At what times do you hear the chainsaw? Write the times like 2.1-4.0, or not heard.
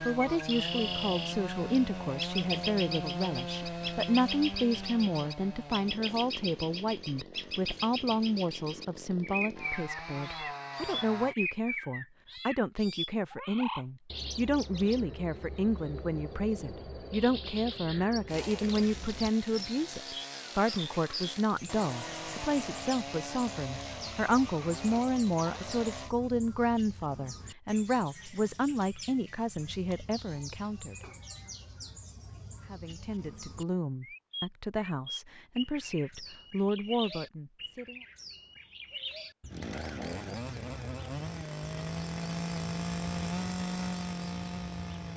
0.0-11.3, 18.2-26.1, 39.5-45.1.